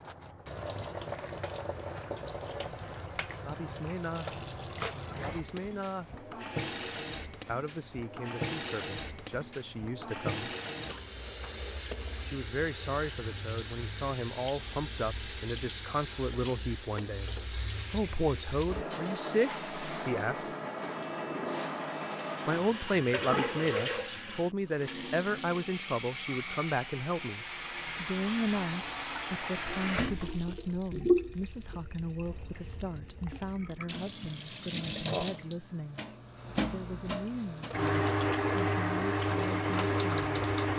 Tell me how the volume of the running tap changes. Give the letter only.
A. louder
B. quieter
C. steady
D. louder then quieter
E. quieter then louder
A.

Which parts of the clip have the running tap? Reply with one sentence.
The running tap can be heard from 0.0 to 40.7 s.